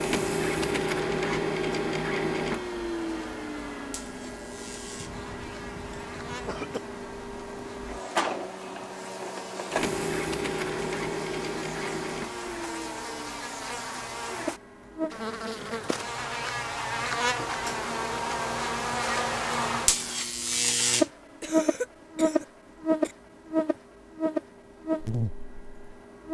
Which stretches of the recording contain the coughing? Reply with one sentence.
You can hear the coughing from 5.0 to 6.8 s and from 21.4 to 23.1 s.